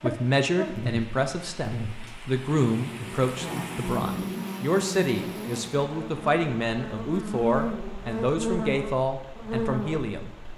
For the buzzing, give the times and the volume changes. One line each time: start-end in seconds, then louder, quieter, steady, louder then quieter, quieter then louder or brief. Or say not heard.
0.0-10.5 steady.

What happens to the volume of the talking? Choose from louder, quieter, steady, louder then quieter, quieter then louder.
steady.